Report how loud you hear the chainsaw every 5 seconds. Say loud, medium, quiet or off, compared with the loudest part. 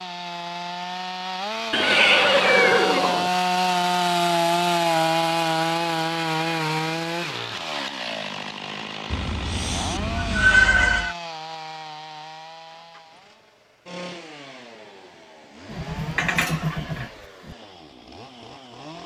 loud, loud, quiet, quiet.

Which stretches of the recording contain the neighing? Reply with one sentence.
The neighing can be heard from 1.7 to 3.3 s, from 9.1 to 11.2 s and from 15.7 to 17.6 s.